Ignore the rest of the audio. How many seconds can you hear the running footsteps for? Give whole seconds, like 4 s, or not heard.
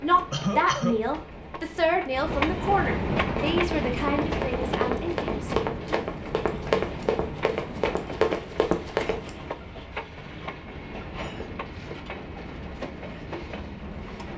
6 s.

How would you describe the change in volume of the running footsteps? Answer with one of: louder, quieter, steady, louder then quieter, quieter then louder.
louder.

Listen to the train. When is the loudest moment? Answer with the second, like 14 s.
3 s.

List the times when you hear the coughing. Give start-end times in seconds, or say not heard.
0.3-1.0.